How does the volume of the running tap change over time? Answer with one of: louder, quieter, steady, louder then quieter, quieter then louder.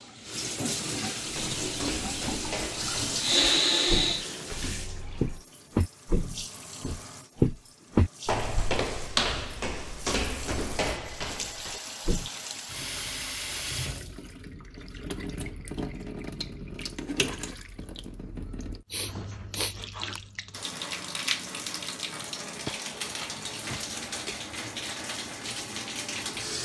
quieter then louder.